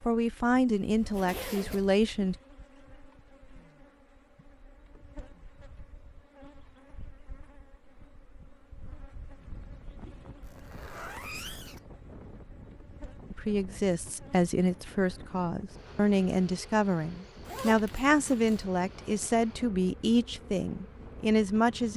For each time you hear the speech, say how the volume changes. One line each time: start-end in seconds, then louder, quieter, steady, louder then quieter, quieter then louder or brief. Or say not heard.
0.0-2.4 brief
13.3-21.9 steady.